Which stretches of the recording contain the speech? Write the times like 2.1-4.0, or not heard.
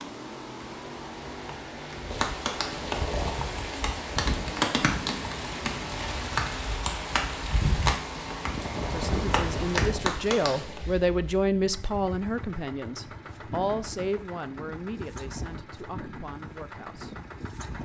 8.9-17.1.